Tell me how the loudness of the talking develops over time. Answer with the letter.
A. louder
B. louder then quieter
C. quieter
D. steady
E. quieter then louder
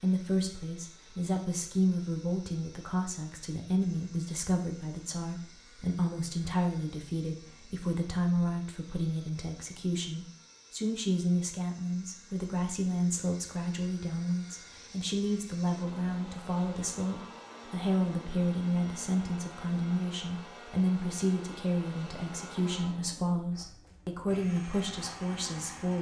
D.